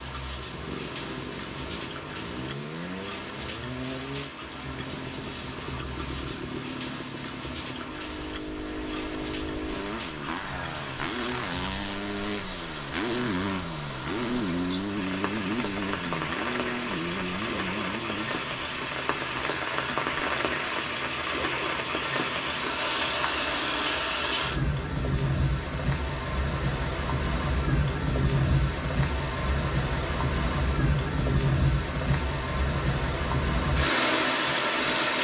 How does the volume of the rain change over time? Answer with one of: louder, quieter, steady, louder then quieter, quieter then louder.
louder.